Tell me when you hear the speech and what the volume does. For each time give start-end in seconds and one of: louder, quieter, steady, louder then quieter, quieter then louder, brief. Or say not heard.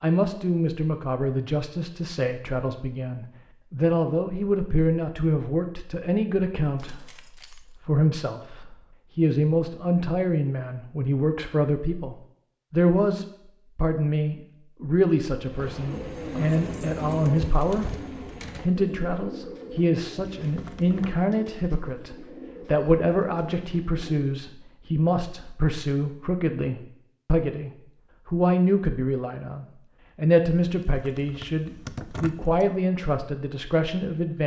0.0-34.4 steady.